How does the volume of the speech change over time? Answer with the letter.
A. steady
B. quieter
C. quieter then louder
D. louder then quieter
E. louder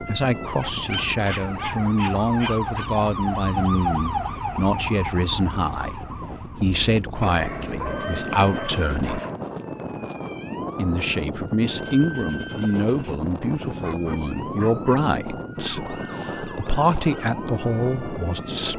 A.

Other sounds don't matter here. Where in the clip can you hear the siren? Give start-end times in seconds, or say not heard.
0.0-18.7.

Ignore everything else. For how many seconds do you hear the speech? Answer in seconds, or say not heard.
17 s.